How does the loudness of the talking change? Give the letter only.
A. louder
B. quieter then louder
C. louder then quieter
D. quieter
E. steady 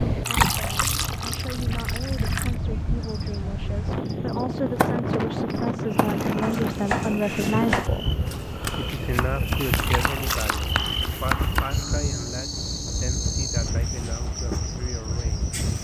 C.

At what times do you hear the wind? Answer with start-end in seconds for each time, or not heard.
0.0-15.7.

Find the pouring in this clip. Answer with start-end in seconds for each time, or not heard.
0.2-2.5, 9.8-11.2.